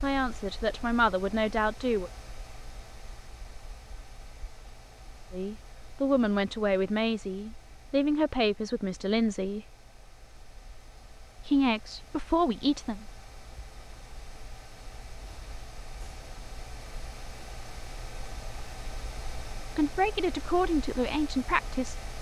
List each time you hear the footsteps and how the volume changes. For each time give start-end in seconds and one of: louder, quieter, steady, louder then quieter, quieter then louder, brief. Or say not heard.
not heard.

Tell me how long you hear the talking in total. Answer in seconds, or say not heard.
10 s.